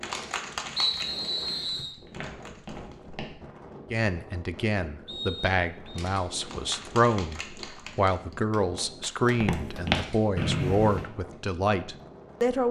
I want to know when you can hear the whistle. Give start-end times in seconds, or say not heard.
0.8-1.9, 5.0-6.0, 10.3-11.1.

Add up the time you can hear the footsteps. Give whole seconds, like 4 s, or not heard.
4 s.